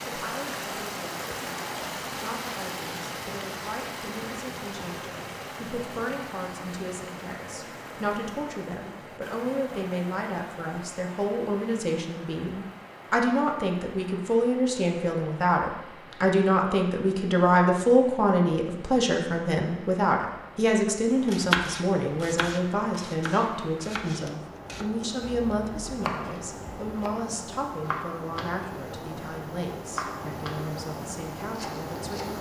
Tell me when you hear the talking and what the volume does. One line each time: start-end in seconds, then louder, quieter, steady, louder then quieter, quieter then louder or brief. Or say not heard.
0.1-32.3 louder then quieter.